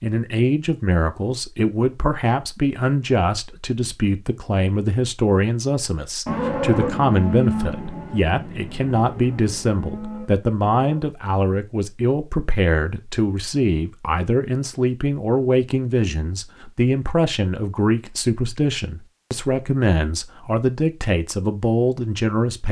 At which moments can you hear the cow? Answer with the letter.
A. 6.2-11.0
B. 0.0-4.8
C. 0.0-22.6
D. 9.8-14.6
A.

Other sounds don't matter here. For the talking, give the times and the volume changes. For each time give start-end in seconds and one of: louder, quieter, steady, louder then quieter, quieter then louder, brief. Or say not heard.
0.0-22.6 steady.